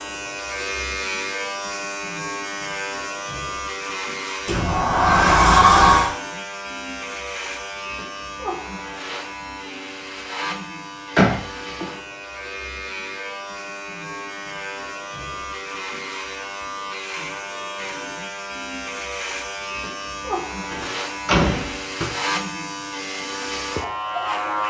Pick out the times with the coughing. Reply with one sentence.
You can't hear the coughing here.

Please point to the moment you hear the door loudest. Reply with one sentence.
The loudest moment of the door is at 6 seconds.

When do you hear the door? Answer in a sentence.
The door can be heard from 4.5 to 6.1 s, from 11.2 to 11.8 s and from 20.7 to 22.1 s.